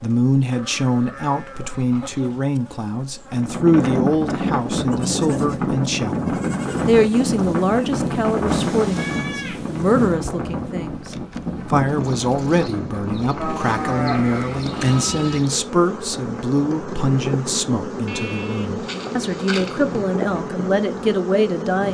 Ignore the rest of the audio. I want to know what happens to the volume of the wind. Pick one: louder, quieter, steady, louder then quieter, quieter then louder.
quieter.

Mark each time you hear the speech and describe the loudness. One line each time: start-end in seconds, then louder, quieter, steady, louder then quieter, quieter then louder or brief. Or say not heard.
0.0-21.8 steady.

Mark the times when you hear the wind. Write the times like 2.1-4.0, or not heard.
3.3-21.8.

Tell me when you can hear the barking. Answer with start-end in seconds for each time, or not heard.
not heard.